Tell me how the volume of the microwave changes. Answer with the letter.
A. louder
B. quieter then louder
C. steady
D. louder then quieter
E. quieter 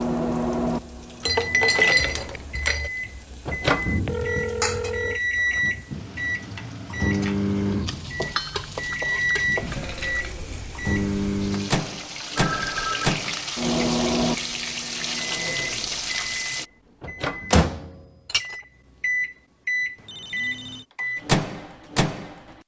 C.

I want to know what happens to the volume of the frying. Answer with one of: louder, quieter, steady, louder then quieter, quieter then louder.
louder.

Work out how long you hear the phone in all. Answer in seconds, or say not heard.
3 s.